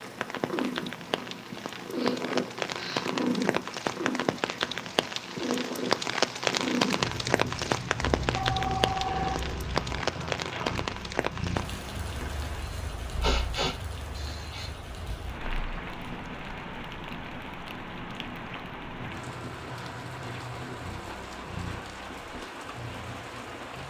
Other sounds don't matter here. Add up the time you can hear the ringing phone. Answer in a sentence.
The ringing phone can be heard for 2 seconds in total.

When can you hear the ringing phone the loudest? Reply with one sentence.
The volume of the ringing phone peaks at 9 seconds.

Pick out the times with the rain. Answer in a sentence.
The rain can be heard from 0.0 to 23.8 s.